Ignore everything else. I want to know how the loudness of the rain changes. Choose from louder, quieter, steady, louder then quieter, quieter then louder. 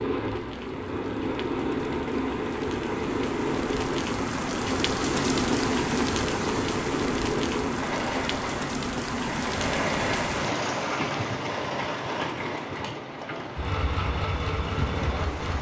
louder then quieter.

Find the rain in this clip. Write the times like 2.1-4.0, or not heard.
0.0-15.5.